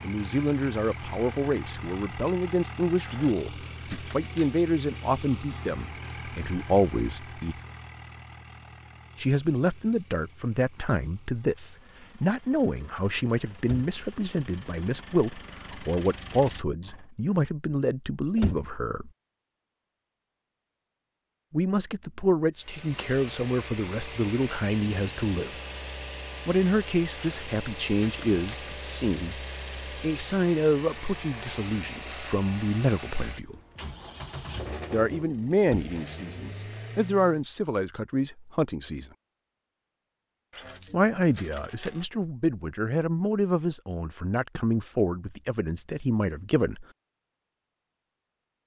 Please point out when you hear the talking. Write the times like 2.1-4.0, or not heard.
0.0-7.6, 9.2-19.1, 21.5-25.6, 26.4-33.5, 34.9-39.1, 40.9-46.9.